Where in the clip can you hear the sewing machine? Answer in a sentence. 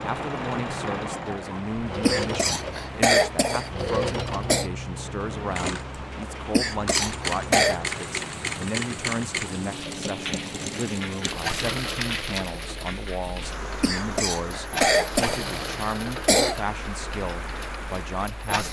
You can hear the sewing machine from 0.0 to 18.6 s.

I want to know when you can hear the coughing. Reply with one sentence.
You can hear the coughing from 2.0 to 4.7 s, from 6.5 to 7.8 s and from 13.8 to 16.6 s.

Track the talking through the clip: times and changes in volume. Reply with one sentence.
The talking can be heard from 0.0 to 18.6 s, at a steady volume.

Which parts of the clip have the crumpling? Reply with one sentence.
You can hear the crumpling from 11.2 to 12.6 s.